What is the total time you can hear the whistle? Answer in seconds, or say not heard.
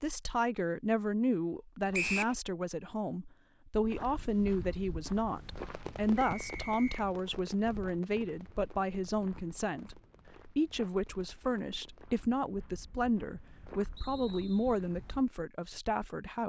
2 s.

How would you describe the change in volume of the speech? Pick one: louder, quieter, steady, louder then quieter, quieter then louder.
steady.